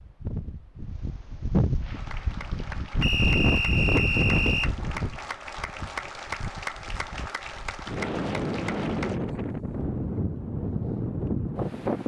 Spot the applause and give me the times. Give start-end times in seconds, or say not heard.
1.8-9.2.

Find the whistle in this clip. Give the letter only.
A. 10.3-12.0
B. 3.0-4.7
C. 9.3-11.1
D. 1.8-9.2
B.